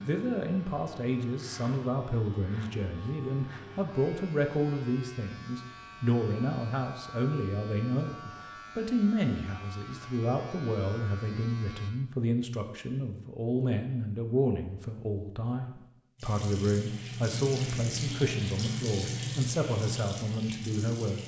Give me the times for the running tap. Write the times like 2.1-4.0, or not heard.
16.1-21.2.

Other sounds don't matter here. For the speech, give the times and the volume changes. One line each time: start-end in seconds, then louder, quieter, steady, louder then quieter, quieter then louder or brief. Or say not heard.
0.0-21.2 steady.